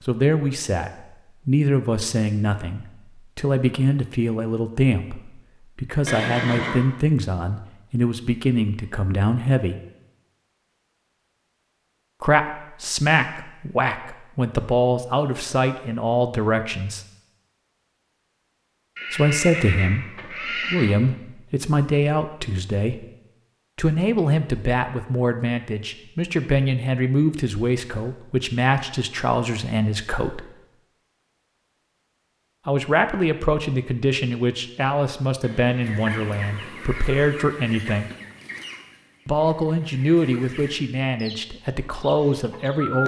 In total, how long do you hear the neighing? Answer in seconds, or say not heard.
5 s.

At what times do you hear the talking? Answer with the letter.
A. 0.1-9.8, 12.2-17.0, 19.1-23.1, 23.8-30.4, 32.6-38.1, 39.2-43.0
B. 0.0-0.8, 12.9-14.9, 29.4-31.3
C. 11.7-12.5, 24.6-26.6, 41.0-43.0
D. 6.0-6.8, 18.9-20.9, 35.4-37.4
A.